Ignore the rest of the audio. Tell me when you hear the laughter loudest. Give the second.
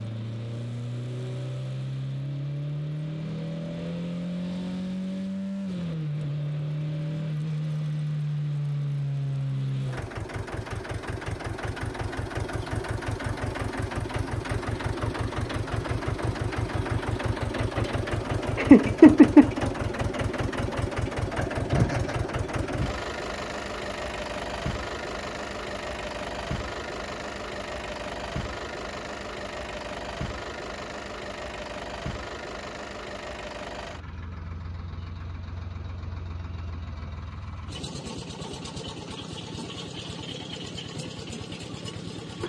19 s.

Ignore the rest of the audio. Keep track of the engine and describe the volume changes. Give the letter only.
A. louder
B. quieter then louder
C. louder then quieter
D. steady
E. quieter
E.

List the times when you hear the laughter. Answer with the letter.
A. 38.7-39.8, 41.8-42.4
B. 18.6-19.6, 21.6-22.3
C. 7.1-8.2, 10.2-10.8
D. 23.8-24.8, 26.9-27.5
B.